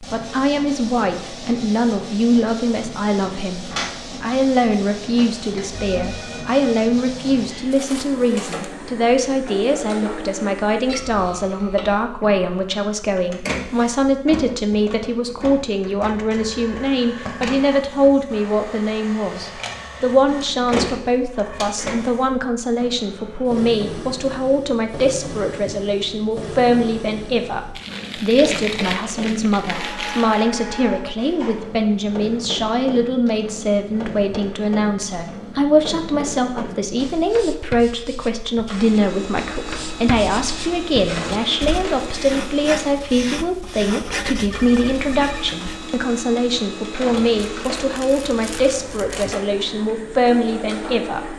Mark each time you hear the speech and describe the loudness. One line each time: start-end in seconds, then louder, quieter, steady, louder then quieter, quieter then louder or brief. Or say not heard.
0.0-51.3 steady.